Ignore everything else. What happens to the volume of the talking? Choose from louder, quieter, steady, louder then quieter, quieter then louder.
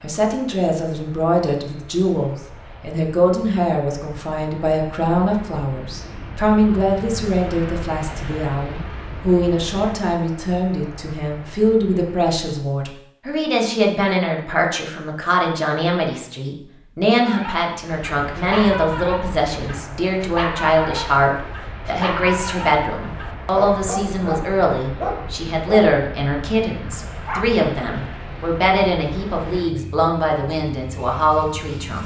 steady.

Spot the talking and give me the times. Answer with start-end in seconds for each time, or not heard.
0.0-32.0.